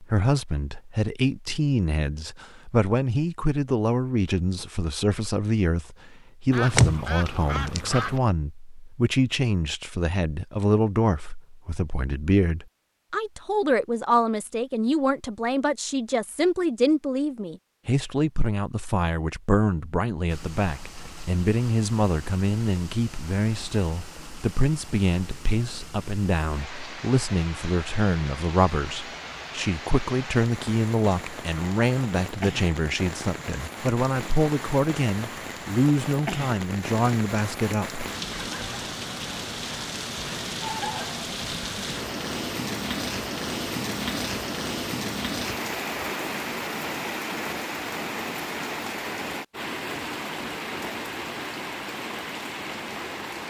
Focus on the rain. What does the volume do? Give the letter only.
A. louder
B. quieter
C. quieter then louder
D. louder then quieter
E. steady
A.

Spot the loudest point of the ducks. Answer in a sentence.
The volume of the ducks peaks at 7 seconds.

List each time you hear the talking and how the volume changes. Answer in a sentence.
The talking can be heard from 0.0 to 38.0 s, at a steady volume.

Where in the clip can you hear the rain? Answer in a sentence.
The rain can be heard from 20.2 to 53.4 s.